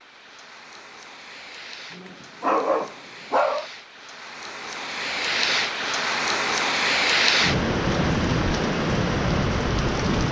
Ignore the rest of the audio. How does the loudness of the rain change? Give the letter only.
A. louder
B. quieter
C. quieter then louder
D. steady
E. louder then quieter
A.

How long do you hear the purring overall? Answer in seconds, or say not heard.
not heard.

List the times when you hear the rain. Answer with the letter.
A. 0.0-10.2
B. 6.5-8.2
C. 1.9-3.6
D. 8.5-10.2
A.